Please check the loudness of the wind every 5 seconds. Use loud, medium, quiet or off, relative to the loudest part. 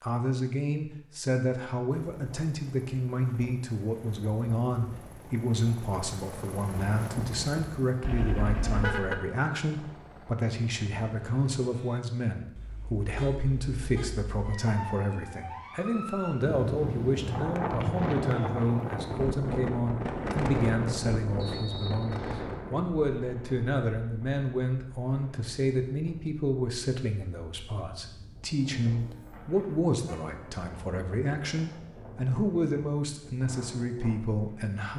off, off, off, loud, loud, quiet, quiet.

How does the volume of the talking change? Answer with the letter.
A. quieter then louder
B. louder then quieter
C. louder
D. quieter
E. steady
E.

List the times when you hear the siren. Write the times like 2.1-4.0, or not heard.
14.4-16.6.